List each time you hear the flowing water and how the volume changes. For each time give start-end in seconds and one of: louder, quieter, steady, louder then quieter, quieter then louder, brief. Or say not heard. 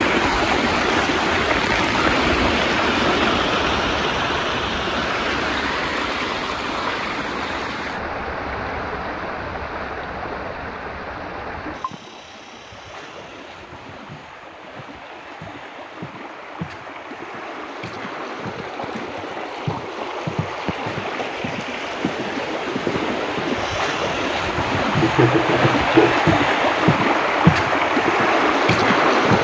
0.0-29.3 quieter then louder.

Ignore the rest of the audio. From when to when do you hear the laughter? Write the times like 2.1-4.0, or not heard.
25.0-26.4.